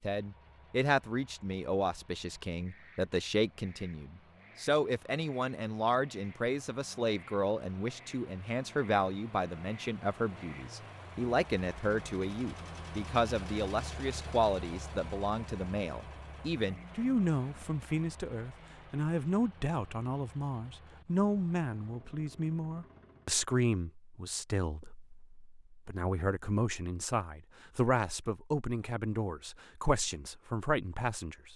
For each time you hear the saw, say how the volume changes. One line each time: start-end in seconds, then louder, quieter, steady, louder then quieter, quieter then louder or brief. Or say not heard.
not heard.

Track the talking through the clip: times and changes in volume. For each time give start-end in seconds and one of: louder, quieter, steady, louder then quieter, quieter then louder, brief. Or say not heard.
0.0-31.5 steady.